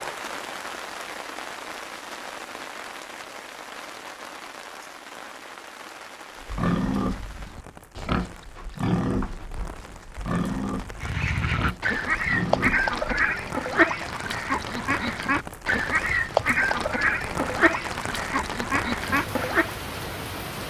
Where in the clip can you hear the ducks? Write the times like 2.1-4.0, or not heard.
10.9-19.8.